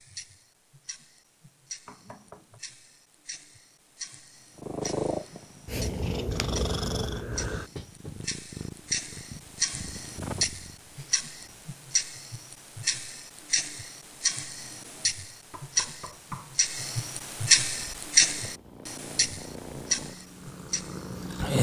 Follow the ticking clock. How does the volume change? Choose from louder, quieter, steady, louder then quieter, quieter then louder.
louder.